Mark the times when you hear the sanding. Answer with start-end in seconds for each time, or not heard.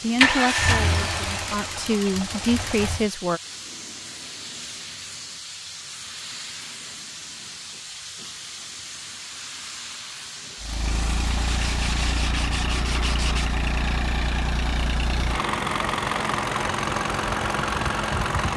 11.4-13.6.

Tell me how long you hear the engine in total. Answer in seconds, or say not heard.
11 s.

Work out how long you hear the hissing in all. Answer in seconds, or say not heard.
12 s.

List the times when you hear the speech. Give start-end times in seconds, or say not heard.
0.0-3.4.